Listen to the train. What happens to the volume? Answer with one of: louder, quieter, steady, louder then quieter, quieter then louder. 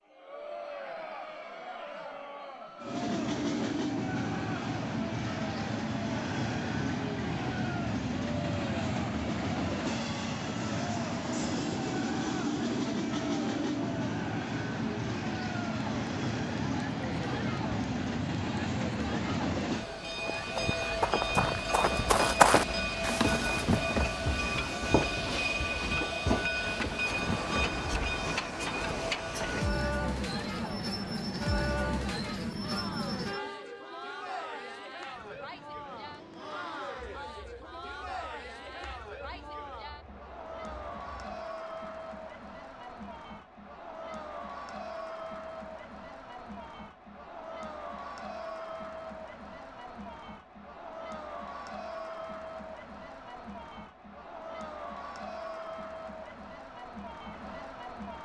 quieter.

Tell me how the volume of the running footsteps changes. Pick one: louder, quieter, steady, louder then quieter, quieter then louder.
louder then quieter.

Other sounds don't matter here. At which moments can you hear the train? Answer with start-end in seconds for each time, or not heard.
2.8-41.4.